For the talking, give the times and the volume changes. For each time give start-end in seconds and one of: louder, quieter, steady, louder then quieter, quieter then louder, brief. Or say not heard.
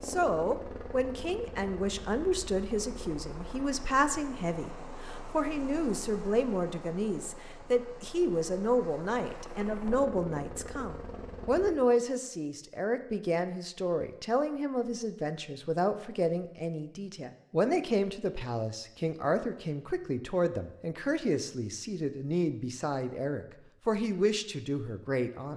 0.0-25.5 steady.